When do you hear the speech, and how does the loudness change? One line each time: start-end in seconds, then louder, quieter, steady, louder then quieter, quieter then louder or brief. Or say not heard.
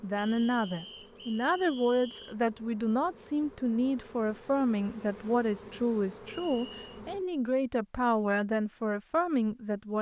0.0-9.9 steady.